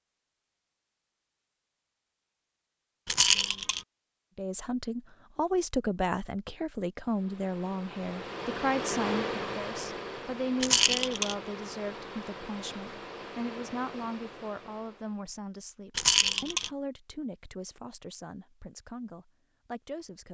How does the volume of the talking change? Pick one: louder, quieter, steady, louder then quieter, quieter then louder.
quieter.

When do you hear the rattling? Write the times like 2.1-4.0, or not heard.
3.0-3.9, 10.6-11.3, 15.9-16.7.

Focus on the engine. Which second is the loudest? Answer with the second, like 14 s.
9 s.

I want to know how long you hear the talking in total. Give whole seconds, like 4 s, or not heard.
16 s.